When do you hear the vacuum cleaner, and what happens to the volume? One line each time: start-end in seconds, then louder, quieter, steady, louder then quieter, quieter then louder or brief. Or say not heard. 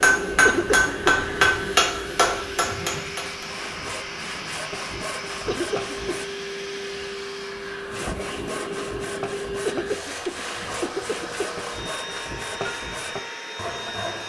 0.0-14.2 steady.